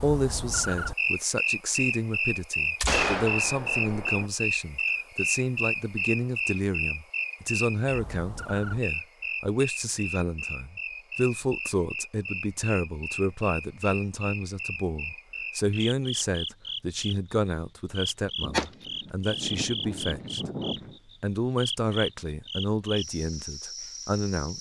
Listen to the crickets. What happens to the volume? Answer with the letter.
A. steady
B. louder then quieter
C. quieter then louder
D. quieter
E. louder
D.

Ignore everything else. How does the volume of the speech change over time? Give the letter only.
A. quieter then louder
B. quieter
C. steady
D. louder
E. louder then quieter
C.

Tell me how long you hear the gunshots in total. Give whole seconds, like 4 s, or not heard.
4 s.